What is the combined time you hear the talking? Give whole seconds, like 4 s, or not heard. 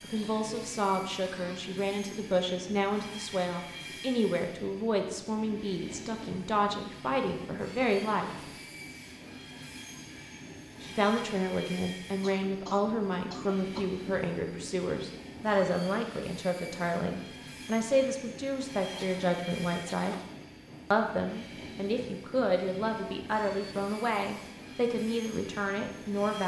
23 s.